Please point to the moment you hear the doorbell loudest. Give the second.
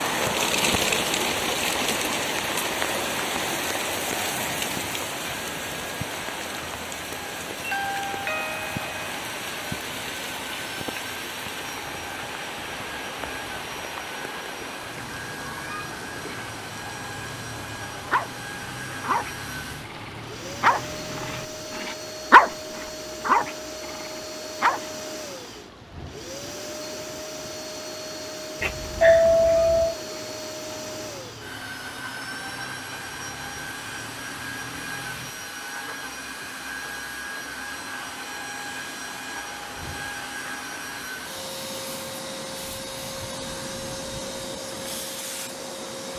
29 s.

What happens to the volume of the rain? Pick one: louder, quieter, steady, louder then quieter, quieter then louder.
quieter.